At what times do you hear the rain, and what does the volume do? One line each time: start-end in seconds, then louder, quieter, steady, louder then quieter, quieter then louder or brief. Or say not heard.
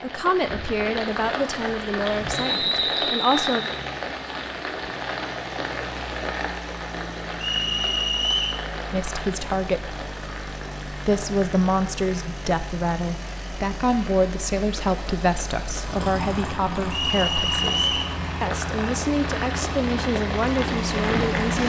0.0-21.6 quieter then louder.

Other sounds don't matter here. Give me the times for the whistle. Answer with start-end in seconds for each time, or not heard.
2.3-3.8, 7.4-8.6, 16.9-18.1.